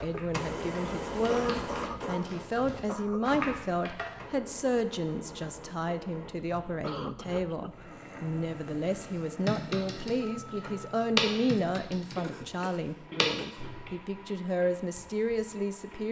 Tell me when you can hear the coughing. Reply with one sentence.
The coughing can be heard from 1.2 to 3.4 s, from 6.7 to 8.0 s and from 12.2 to 13.7 s.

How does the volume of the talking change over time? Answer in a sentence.
The volume of the talking stays about the same.